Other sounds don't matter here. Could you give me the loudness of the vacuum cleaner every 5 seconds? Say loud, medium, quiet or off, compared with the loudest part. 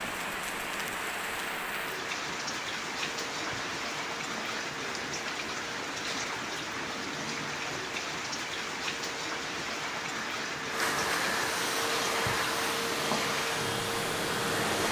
medium, quiet, loud.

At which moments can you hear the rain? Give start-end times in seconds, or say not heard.
0.0-14.8.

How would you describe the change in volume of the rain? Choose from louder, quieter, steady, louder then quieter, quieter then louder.
steady.